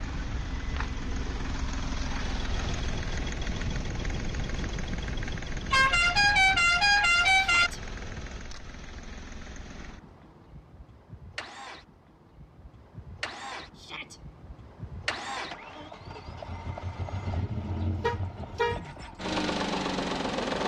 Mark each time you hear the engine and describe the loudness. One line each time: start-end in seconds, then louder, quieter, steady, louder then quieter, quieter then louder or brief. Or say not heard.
0.0-20.6 quieter then louder.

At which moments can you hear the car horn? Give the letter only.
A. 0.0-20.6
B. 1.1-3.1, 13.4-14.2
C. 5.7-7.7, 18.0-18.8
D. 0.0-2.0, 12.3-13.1
C.